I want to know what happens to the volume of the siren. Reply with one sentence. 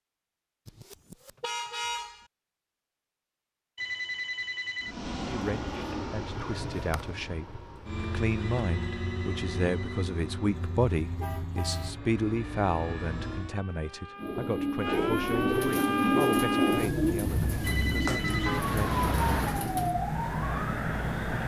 The volume of the siren goes up.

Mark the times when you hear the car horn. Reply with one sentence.
You can hear the car horn from 0.7 to 2.2 s, from 10.5 to 12.0 s and from 18.4 to 19.6 s.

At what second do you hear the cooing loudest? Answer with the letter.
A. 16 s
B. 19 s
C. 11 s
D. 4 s
A.